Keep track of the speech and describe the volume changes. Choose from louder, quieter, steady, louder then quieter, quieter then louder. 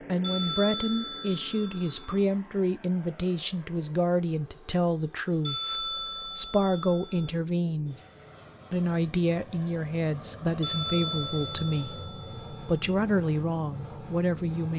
steady.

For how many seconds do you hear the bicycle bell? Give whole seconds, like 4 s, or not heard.
6 s.